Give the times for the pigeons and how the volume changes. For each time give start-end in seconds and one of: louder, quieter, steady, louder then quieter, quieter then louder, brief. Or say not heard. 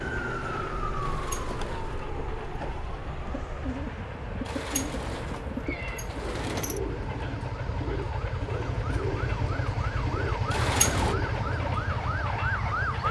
3.1-12.1 steady.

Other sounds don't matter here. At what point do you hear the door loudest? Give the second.
11 s.